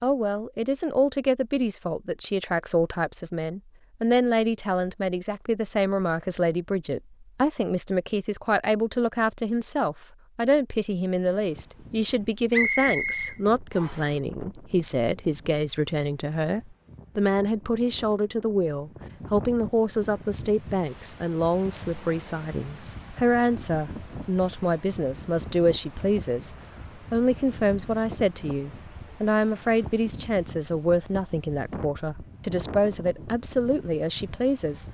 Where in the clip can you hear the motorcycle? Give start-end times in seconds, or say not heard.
not heard.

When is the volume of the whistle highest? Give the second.
13 s.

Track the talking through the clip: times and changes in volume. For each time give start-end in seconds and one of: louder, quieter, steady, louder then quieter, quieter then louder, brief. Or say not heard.
0.0-34.8 steady.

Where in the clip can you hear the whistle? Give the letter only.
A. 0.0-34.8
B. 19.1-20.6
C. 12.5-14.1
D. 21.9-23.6
C.